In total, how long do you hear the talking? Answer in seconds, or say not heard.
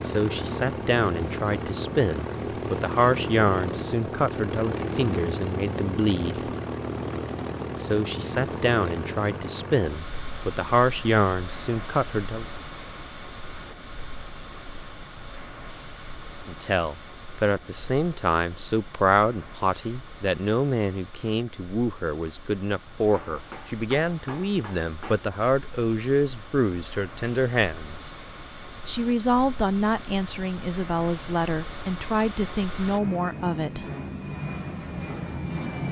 28 s.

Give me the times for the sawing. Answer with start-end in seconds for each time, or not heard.
not heard.